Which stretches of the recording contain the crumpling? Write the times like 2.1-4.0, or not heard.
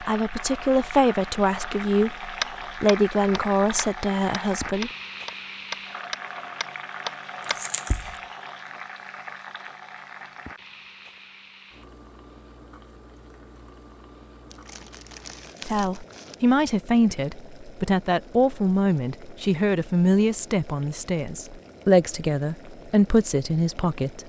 7.4-8.2, 14.5-16.4.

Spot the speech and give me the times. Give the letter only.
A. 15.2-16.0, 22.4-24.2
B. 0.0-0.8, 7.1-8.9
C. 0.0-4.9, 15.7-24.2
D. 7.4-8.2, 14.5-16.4
C.